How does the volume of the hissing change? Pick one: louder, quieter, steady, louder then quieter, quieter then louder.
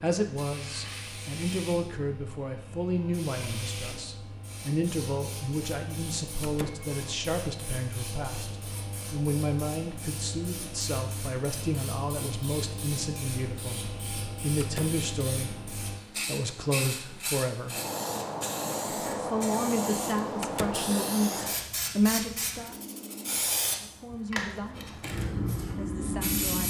louder.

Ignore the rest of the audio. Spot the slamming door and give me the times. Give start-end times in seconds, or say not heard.
6.4-6.8, 14.6-15.1, 20.4-20.9.